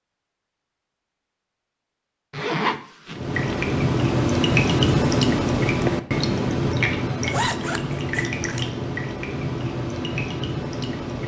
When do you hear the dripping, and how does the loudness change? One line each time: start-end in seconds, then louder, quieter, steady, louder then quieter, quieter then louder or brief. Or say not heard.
3.1-11.2 quieter.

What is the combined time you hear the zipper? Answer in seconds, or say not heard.
3 s.